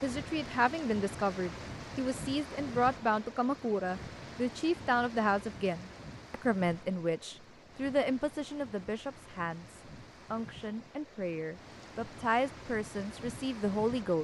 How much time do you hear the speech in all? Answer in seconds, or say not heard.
14 s.